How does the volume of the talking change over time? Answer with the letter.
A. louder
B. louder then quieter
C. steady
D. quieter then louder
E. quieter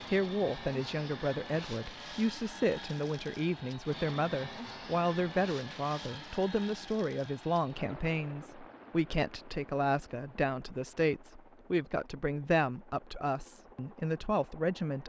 C.